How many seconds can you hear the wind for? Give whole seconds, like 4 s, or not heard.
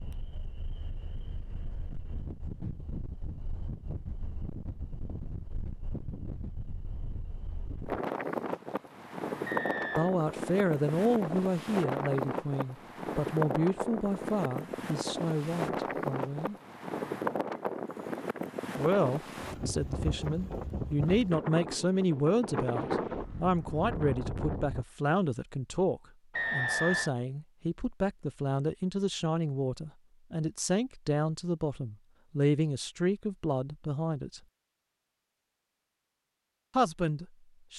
25 s.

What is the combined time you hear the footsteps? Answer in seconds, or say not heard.
not heard.